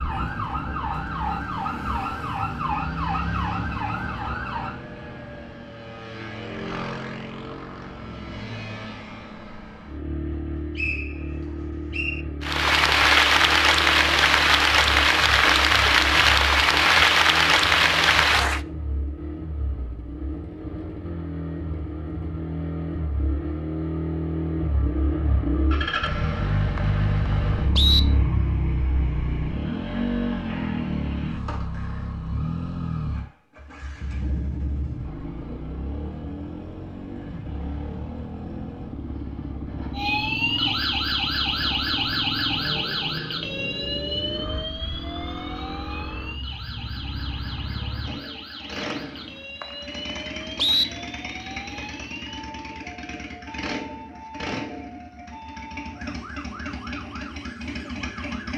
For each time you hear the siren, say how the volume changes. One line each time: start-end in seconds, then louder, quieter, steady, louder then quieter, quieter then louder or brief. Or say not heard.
0.0-4.8 steady
39.9-58.5 quieter.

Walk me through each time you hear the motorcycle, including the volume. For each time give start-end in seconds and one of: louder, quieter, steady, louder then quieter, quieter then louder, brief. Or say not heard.
0.0-58.5 louder then quieter.